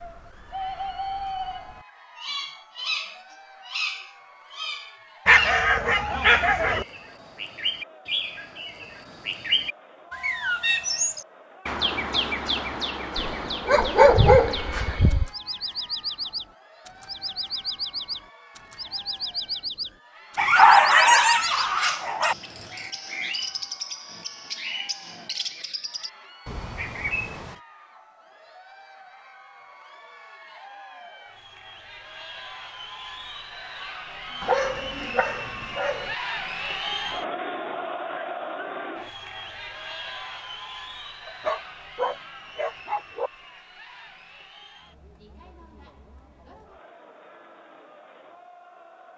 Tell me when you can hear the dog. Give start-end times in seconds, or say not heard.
5.2-6.8, 13.2-15.3, 20.4-22.4, 34.4-36.1, 41.2-43.3.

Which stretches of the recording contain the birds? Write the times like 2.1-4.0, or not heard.
0.0-27.6.